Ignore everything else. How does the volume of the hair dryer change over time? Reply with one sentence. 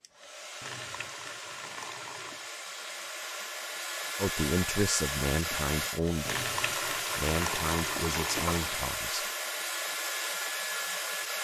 The loudness of the hair dryer goes up.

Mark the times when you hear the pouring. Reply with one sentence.
The pouring can be heard from 0.6 to 2.5 s and from 6.2 to 8.8 s.